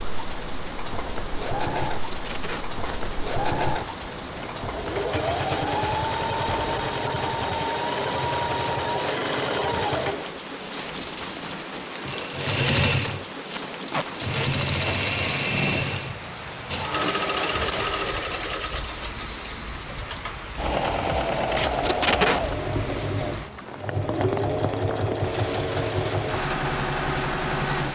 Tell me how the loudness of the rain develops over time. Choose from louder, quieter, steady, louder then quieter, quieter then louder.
steady.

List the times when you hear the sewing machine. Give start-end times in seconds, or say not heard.
0.0-27.9.